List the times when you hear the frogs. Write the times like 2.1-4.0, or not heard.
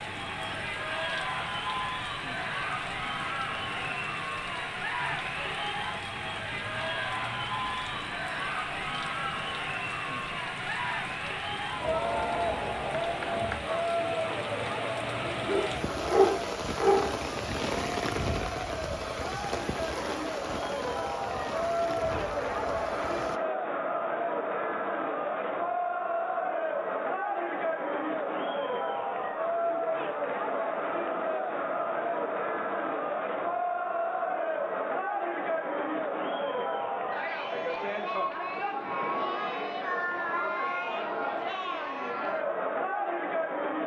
not heard.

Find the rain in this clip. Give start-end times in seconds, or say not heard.
0.0-23.4.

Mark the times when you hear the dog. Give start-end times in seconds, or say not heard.
15.3-17.1.